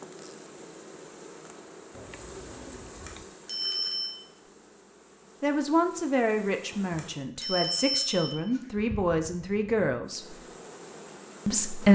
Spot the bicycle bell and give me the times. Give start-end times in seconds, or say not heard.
3.0-4.2, 6.9-8.6.